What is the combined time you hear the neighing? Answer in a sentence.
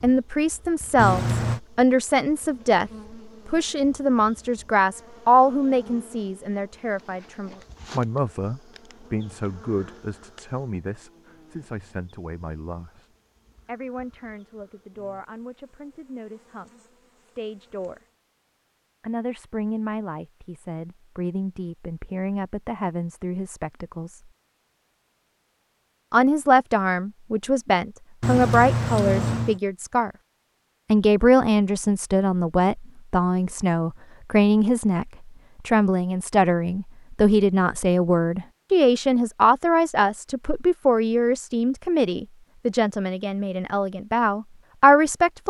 You can hear the neighing for 2 seconds altogether.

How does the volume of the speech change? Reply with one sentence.
The volume of the speech goes down, then up.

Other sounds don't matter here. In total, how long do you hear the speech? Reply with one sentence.
The speech can be heard for 42 seconds in total.